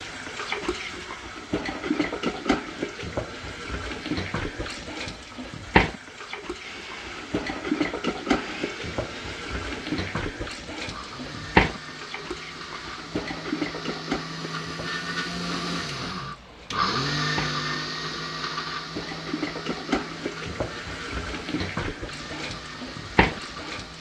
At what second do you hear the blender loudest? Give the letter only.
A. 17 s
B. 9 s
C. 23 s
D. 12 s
A.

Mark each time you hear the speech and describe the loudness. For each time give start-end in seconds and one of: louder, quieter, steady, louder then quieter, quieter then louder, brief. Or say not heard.
not heard.